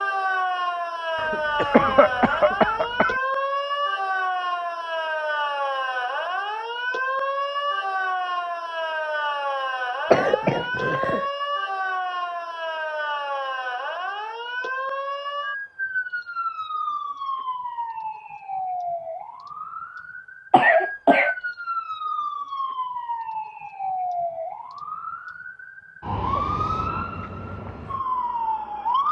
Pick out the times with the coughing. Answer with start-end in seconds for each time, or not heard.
1.1-3.1, 10.1-11.2, 20.5-21.4.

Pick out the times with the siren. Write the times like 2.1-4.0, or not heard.
0.0-29.0.